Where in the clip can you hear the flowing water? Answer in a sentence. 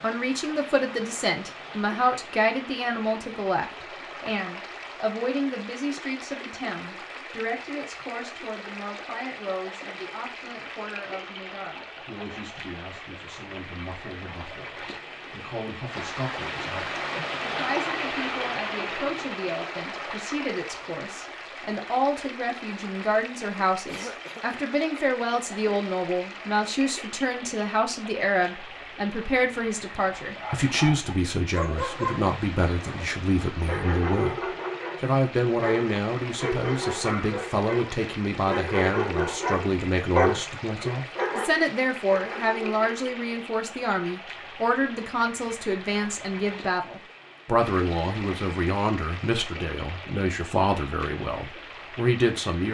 You can hear the flowing water from 0.0 to 52.6 s.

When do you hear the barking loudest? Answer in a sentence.
The volume of the barking peaks at 40 seconds.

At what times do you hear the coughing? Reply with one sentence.
The coughing can be heard from 23.9 to 24.4 s.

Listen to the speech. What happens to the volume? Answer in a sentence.
The loudness of the speech goes down, then up.